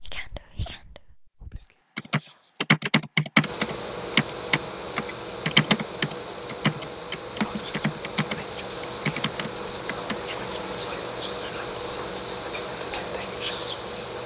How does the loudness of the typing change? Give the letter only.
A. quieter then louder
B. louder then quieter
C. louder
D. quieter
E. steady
D.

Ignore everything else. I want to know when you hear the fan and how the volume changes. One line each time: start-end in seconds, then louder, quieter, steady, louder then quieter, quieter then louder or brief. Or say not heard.
3.4-14.2 steady.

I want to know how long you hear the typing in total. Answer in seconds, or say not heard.
8 s.